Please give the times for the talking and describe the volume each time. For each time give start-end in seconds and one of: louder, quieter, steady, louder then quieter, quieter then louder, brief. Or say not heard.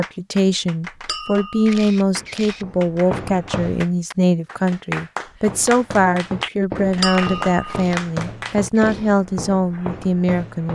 0.0-10.7 steady.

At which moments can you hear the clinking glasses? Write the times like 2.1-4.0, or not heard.
1.1-1.7, 7.0-7.8.